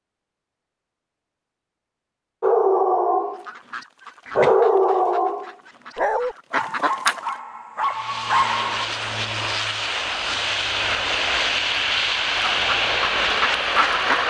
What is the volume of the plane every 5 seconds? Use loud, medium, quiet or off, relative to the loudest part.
off, medium, loud.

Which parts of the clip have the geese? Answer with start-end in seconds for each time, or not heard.
3.2-7.3, 12.3-14.2.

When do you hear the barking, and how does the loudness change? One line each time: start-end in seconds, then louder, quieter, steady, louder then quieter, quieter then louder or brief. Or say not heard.
2.4-3.5 brief
4.2-8.8 quieter then louder.